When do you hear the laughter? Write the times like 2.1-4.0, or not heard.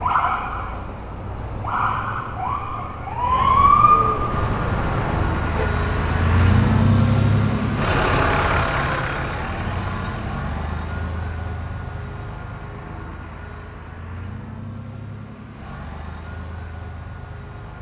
not heard.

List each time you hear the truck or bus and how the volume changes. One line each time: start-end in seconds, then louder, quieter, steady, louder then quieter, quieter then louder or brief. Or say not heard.
4.3-17.7 quieter.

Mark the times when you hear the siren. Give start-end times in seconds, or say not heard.
0.0-5.7.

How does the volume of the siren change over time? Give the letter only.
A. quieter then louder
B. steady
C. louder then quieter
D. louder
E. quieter
C.